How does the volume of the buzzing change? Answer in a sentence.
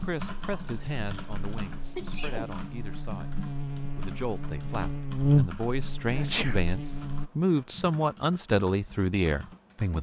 The volume of the buzzing goes up, then down.